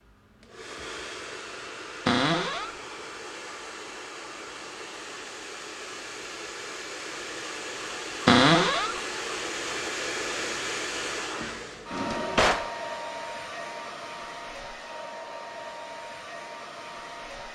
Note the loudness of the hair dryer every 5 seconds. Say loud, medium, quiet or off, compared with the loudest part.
medium, loud, loud, medium.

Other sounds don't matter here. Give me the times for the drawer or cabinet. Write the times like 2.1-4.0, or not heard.
2.0-2.7, 8.2-8.9, 11.9-12.7.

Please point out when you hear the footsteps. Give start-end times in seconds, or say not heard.
not heard.